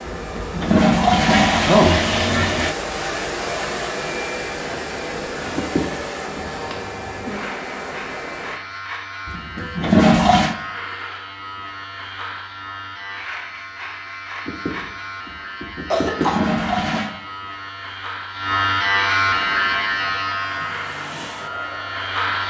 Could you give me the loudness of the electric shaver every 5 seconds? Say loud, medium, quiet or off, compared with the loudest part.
off, medium, medium, loud, loud.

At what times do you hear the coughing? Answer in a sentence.
The coughing can be heard from 5.5 to 6.5 s and from 14.4 to 16.4 s.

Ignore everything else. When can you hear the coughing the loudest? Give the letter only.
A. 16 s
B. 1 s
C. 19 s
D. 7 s
A.